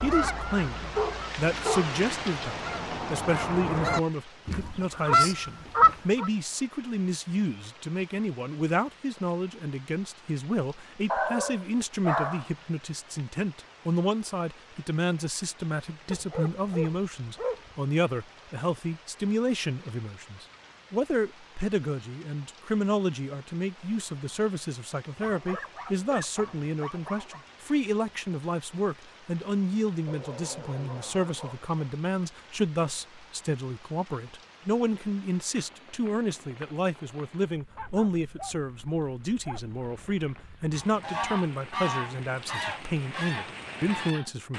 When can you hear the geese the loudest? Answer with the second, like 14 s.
6 s.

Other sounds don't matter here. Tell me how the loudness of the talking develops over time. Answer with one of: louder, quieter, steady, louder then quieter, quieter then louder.
steady.